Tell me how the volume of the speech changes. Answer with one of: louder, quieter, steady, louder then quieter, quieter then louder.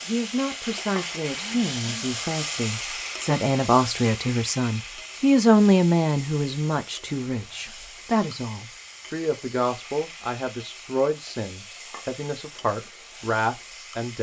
louder then quieter.